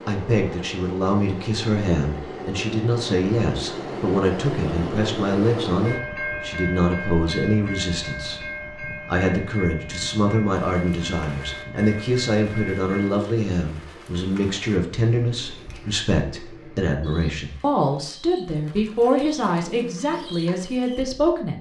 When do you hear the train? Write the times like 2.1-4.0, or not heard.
0.0-13.2.